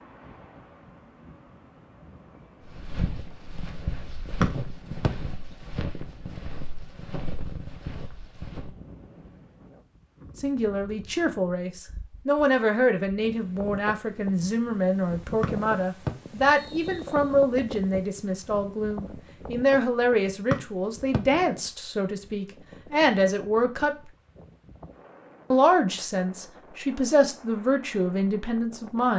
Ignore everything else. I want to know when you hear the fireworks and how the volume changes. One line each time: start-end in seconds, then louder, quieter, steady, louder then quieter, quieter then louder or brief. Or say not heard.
not heard.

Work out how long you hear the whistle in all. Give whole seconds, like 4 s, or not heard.
3 s.